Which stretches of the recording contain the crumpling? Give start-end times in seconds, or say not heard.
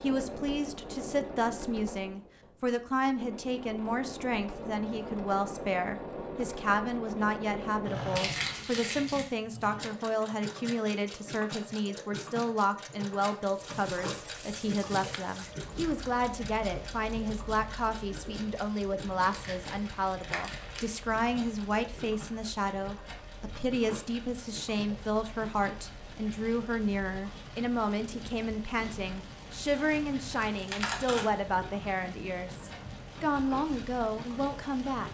8.2-9.3, 19.2-20.9, 29.6-31.3.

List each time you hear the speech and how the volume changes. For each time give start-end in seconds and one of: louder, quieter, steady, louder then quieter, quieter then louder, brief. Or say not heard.
0.0-35.0 steady.